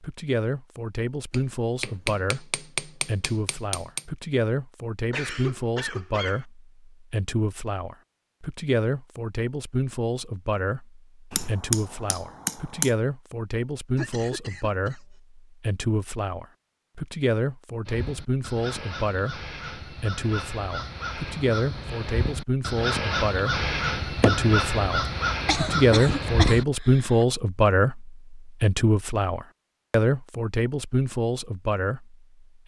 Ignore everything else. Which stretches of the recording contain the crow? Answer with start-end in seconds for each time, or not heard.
17.9-26.6.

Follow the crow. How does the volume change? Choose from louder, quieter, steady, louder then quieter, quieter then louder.
louder.